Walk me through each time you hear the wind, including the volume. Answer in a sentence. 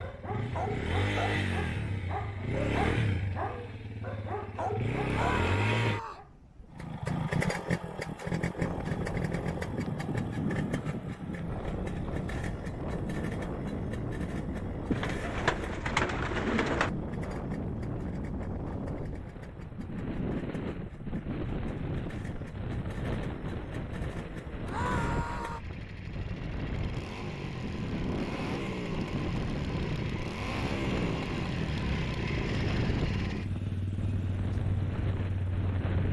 The wind can be heard from 8.6 to 36.0 s, at a steady volume.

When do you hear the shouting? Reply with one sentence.
You can hear the shouting from 5.0 to 6.2 s and from 24.6 to 25.6 s.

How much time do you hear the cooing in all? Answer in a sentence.
The cooing can be heard for 2 seconds in total.